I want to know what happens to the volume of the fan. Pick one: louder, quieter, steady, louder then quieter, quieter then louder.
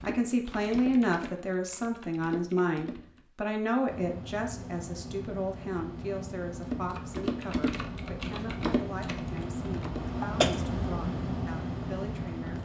louder.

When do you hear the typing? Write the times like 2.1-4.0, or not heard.
0.0-3.2, 6.7-10.8.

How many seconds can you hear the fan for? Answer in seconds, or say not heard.
9 s.